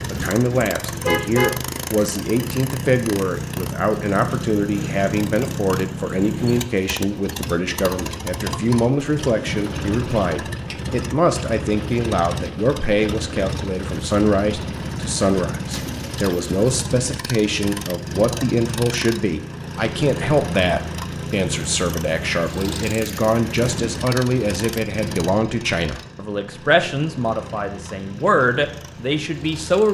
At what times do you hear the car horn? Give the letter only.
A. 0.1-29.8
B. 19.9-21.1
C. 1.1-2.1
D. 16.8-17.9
C.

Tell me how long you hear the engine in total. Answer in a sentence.
The engine can be heard for 30 seconds in total.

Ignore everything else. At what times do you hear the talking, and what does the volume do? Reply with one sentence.
The talking can be heard from 0.1 to 29.8 s, at a steady volume.